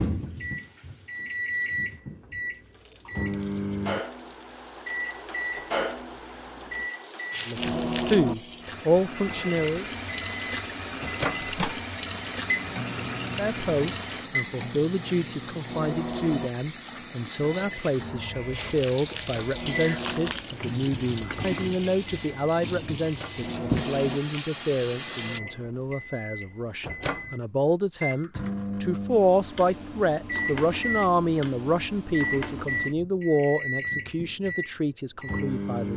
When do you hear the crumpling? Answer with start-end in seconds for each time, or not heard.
7.3-8.3, 18.5-20.4.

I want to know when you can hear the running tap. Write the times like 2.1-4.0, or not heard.
0.0-25.4.